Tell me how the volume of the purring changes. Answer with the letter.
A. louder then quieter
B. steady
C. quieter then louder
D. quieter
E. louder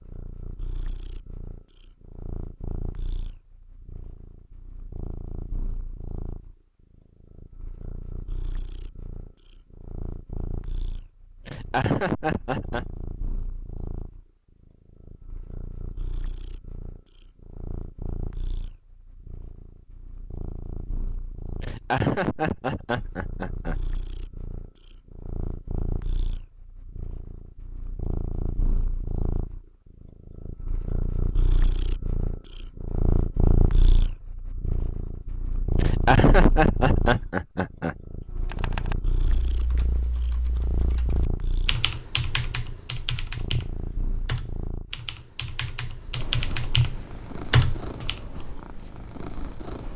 A.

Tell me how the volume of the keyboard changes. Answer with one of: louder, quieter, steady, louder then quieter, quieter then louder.
louder.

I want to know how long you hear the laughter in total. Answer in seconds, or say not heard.
6 s.